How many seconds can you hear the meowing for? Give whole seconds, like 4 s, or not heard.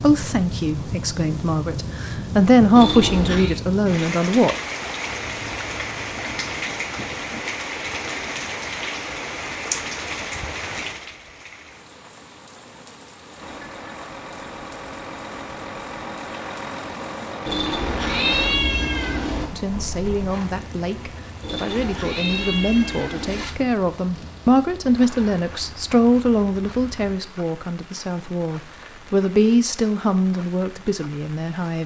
5 s.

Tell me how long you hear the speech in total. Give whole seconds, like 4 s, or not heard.
17 s.